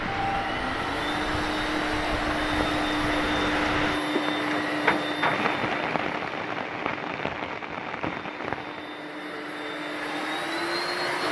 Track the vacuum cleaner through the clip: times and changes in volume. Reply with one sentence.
The vacuum cleaner can be heard from 0.0 to 11.2 s, getting quieter then louder.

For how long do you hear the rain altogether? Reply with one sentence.
You can hear the rain for 9 seconds altogether.